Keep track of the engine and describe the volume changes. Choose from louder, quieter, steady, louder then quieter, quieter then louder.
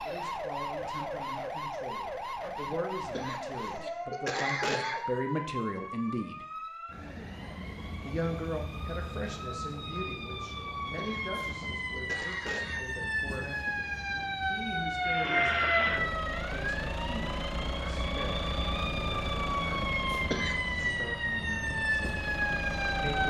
quieter.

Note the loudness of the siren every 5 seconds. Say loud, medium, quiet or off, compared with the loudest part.
medium, medium, loud, loud, loud.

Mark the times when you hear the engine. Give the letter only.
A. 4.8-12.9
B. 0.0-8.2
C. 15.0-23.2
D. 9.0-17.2
C.